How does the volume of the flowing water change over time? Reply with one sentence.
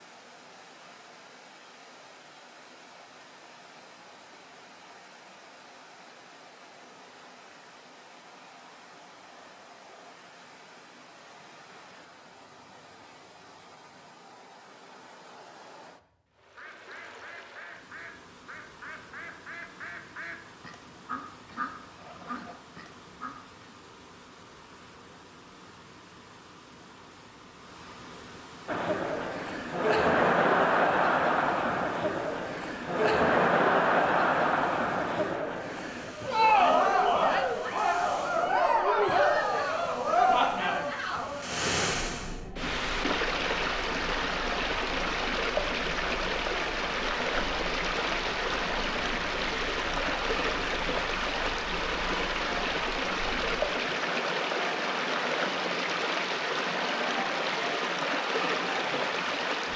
The volume of the flowing water goes up.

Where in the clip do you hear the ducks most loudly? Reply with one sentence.
The volume of the ducks peaks at 22 seconds.